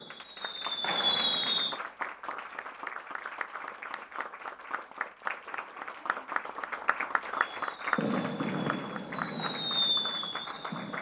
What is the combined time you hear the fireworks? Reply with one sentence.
You can hear the fireworks for 5 seconds altogether.